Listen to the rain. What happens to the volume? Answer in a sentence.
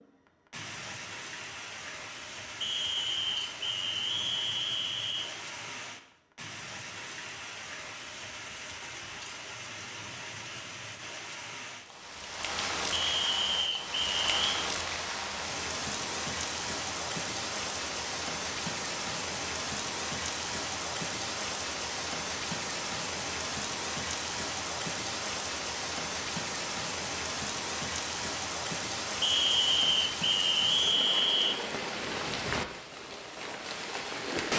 The loudness of the rain goes up.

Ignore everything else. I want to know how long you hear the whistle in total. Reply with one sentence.
You can hear the whistle for 7 seconds altogether.